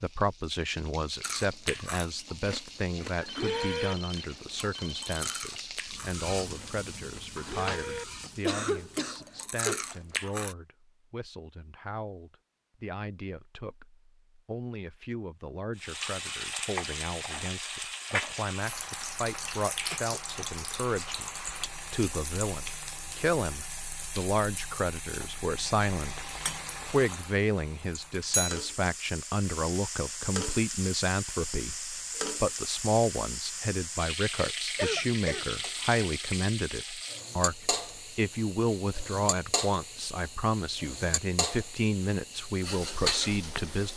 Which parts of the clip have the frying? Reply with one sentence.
The frying can be heard from 0.0 to 9.2 s and from 15.8 to 43.9 s.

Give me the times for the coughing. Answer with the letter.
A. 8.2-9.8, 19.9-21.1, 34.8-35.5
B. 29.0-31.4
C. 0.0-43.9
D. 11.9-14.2
A.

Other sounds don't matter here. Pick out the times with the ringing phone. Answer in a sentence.
The ringing phone can be heard from 3.2 to 5.5 s.